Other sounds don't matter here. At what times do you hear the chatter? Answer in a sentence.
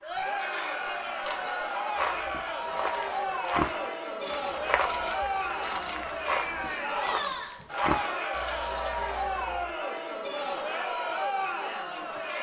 You can hear the chatter from 0.0 to 12.3 s.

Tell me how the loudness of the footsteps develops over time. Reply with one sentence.
The volume of the footsteps goes up, then down.